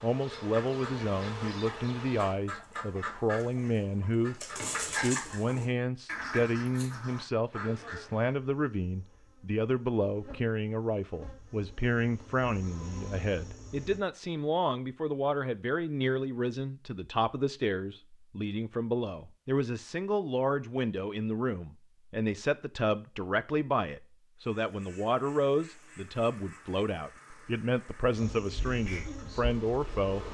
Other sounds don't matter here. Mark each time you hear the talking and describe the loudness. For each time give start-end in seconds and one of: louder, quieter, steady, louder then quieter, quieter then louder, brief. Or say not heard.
0.0-30.2 steady.